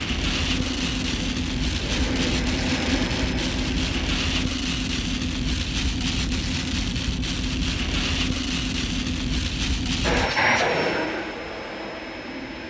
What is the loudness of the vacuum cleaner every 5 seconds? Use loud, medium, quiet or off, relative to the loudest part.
medium, off, loud.